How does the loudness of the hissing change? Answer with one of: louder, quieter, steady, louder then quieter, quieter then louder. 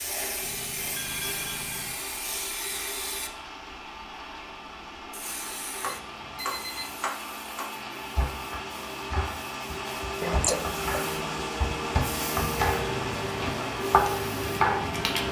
quieter then louder.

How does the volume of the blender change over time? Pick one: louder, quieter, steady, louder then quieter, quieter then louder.
louder.